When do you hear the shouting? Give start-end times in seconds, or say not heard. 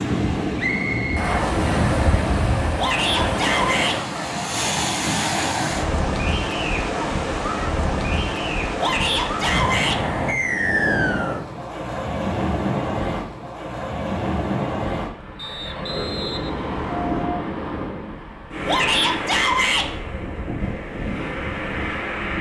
2.8-4.0, 8.8-10.0, 18.6-19.9.